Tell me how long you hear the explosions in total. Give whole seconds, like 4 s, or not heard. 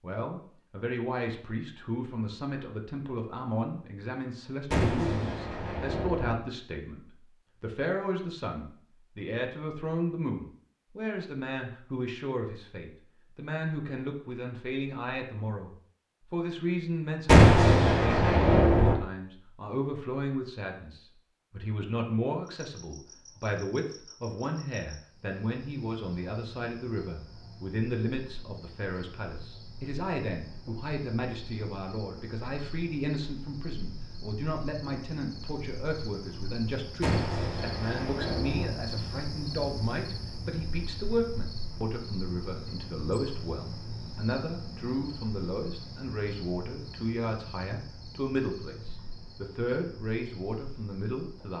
5 s.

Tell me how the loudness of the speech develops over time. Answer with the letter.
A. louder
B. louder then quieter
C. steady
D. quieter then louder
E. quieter
C.